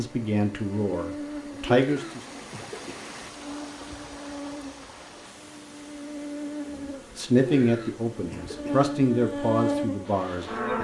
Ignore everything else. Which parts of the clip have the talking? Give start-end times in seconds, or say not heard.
0.0-2.2, 6.8-10.8.